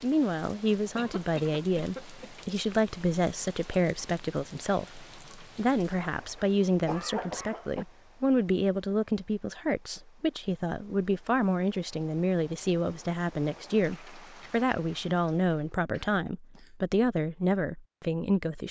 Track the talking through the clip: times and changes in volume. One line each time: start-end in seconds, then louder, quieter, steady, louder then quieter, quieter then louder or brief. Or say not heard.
0.0-18.6 steady.